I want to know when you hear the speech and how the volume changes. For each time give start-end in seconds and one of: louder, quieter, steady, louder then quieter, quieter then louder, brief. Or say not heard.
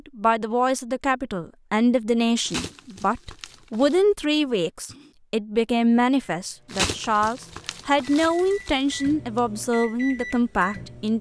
0.1-11.1 steady.